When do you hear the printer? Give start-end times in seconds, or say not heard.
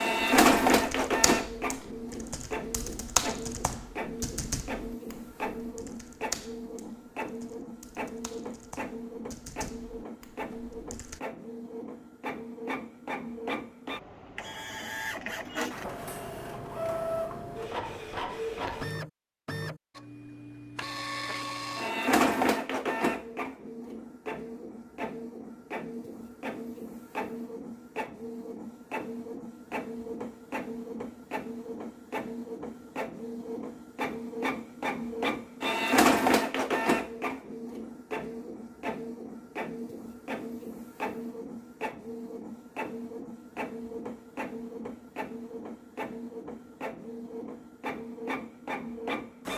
0.0-49.5.